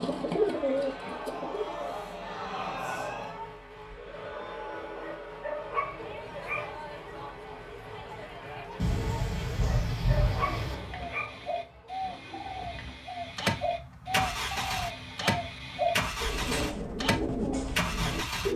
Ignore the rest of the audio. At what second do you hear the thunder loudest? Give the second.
10 s.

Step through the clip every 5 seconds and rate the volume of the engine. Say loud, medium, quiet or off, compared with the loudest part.
quiet, quiet, loud, loud.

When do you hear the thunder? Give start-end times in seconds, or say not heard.
8.8-10.8.